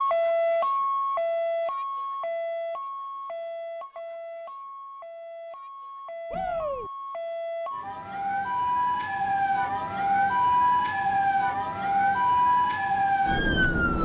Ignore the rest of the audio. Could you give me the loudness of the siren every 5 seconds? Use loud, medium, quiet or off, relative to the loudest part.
medium, medium, loud.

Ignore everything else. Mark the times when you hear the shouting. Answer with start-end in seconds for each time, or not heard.
6.3-6.9.